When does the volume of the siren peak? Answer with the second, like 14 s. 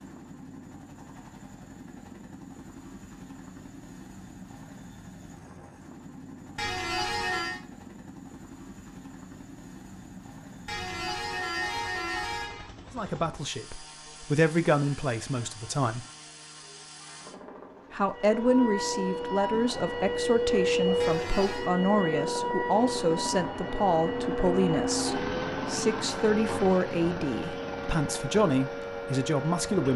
21 s.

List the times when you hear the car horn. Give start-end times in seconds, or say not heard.
6.5-7.6, 10.7-12.7, 21.0-21.7.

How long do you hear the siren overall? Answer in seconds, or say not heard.
12 s.